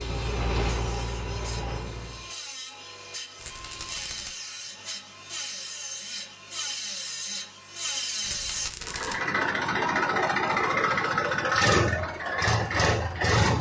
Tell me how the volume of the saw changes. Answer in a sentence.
The loudness of the saw goes up.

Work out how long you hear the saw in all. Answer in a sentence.
You can hear the saw for 9 seconds altogether.